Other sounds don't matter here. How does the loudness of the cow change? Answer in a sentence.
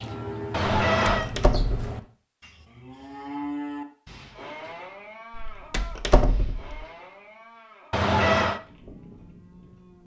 The volume of the cow goes down.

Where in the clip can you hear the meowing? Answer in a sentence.
You can hear the meowing from 0.5 to 1.3 s and from 7.9 to 8.6 s.